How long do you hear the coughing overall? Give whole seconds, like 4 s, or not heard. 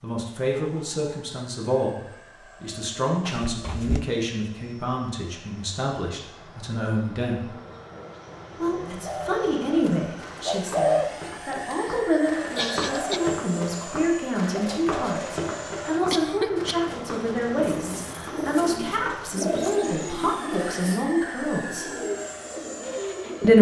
3 s.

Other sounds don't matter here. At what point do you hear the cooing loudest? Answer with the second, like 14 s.
11 s.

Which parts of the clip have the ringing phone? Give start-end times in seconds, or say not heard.
not heard.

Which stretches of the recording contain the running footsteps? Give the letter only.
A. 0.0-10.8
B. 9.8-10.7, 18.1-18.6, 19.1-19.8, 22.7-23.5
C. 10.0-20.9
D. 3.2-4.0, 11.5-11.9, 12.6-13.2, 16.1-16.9
C.